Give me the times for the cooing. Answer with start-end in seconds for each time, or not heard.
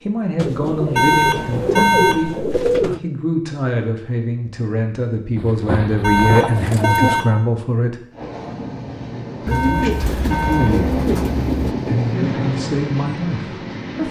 0.3-3.0, 5.3-7.2, 9.4-11.8.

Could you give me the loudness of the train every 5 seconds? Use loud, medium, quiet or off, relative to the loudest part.
off, medium, loud.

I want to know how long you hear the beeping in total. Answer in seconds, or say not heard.
4 s.